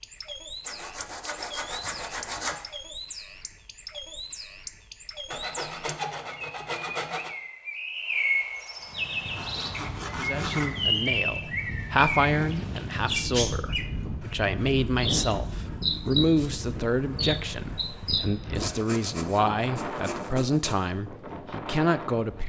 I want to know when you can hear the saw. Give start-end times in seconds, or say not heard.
0.7-2.5, 5.3-7.3, 9.3-10.8, 13.9-16.0, 18.6-20.9.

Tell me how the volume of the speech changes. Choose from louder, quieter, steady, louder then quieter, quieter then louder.
steady.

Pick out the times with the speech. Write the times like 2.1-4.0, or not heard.
10.2-22.4.